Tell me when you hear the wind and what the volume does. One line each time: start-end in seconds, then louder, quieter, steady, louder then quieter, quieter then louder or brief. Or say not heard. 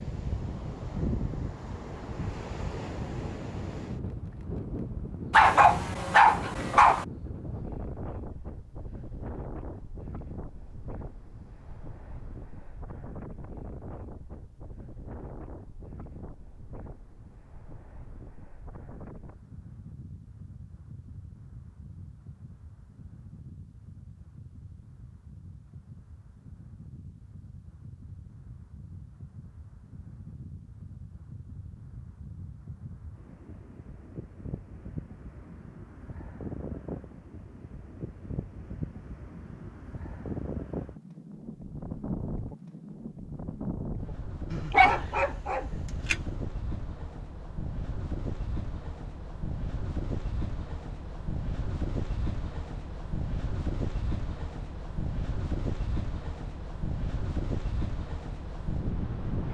0.0-59.4 quieter then louder.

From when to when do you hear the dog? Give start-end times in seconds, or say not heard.
5.3-7.0, 44.5-46.3.